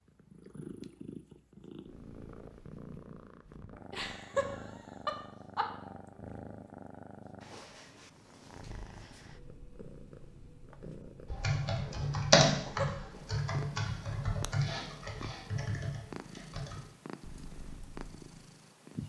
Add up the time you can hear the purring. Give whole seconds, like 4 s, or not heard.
19 s.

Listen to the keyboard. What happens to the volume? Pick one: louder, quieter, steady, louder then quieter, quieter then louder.
quieter.